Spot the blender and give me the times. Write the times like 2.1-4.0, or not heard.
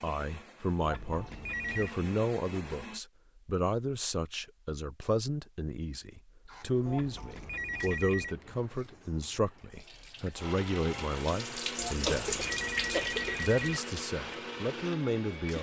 0.0-3.0, 10.3-15.5.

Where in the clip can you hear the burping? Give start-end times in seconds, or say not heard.
not heard.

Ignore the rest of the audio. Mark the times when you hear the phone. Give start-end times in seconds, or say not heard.
0.8-1.9, 6.8-8.3, 11.8-13.8.